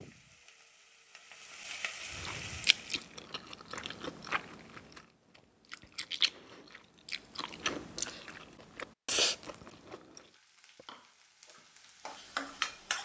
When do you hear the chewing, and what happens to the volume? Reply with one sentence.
You can hear the chewing from 2.1 to 10.2 s, getting louder.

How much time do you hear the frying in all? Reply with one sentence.
You can hear the frying for 6 seconds altogether.